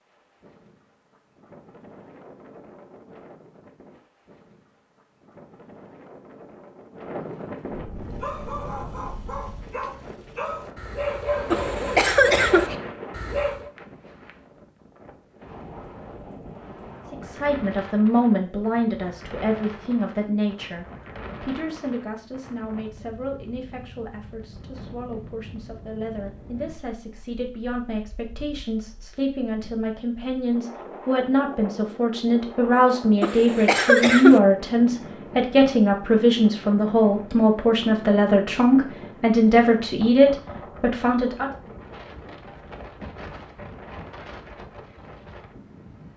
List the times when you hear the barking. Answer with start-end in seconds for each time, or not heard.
8.1-13.7.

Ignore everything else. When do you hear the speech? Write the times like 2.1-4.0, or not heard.
17.1-41.5.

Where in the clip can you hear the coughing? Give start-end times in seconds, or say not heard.
11.5-12.7, 33.2-34.4.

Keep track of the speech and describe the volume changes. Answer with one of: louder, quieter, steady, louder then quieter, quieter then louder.
quieter then louder.